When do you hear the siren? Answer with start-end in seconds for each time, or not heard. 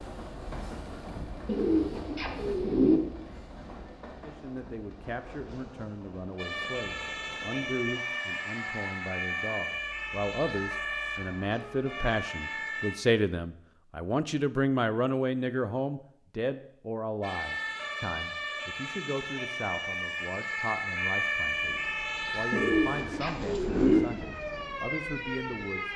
6.3-12.9, 17.2-25.9.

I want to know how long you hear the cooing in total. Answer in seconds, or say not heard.
3 s.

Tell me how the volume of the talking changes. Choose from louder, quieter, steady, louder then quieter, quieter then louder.
louder then quieter.